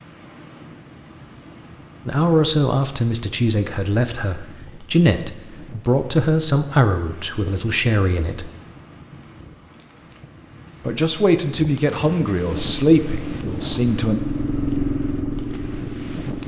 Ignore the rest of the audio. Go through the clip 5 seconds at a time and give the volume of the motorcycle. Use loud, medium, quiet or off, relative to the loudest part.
off, off, loud, loud.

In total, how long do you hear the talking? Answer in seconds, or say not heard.
10 s.